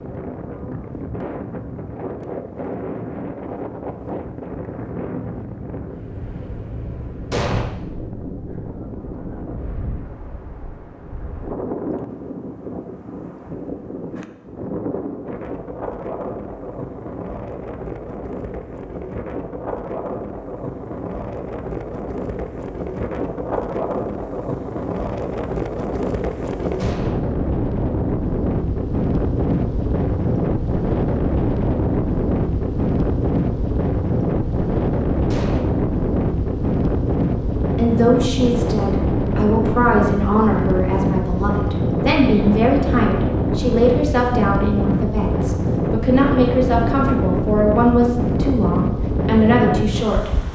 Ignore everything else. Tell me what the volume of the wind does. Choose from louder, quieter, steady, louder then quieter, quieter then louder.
louder.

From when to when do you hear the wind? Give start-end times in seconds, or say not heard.
0.0-50.5.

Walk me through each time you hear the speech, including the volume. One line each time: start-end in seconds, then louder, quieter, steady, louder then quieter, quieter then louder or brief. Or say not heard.
37.8-50.3 steady.